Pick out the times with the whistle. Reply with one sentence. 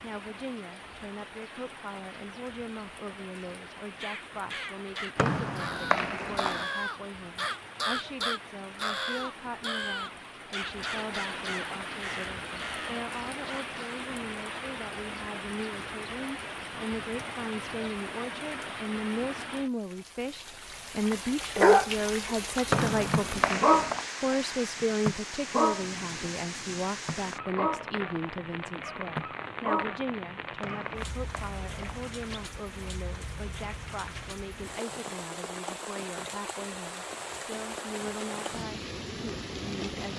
The whistle can be heard from 5.2 to 6.7 s, from 22.7 to 24.1 s and from 30.6 to 32.4 s.